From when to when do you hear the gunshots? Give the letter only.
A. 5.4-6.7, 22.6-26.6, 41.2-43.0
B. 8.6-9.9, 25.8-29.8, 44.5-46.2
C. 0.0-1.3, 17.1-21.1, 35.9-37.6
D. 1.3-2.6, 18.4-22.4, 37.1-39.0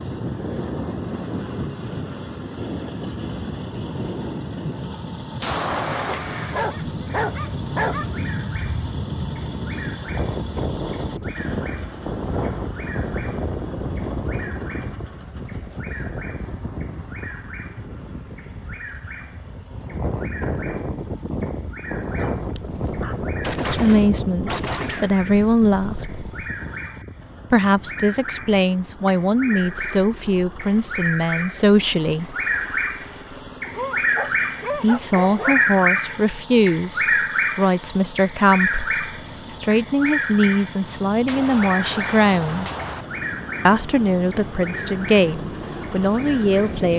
A.